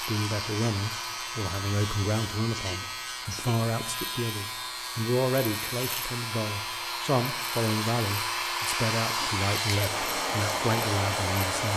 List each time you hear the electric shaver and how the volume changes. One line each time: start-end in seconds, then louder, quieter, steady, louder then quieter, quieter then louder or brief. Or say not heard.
0.0-11.7 steady.